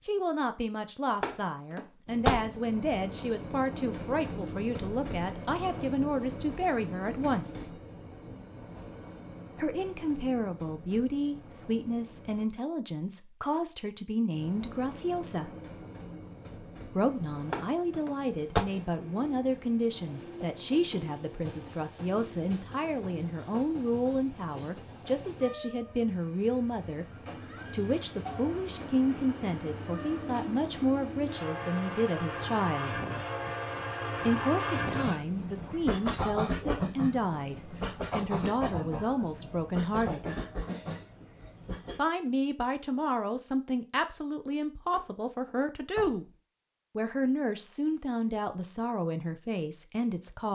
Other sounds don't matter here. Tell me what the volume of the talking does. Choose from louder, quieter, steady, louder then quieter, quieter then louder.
steady.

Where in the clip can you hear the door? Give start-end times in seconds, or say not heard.
1.2-2.5, 17.5-18.6, 44.9-46.3.